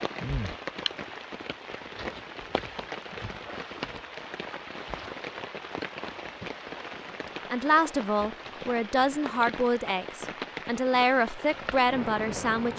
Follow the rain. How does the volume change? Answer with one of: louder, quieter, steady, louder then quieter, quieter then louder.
steady.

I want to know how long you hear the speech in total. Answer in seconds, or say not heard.
5 s.